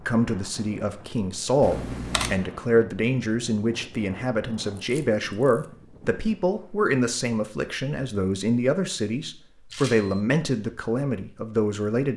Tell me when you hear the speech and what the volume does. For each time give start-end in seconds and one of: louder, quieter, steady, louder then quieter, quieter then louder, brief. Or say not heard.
0.0-12.1 steady.